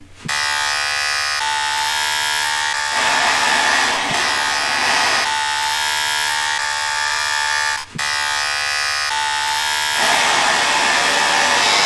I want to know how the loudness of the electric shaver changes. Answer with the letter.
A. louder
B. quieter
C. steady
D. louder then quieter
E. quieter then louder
C.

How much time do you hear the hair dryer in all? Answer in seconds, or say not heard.
4 s.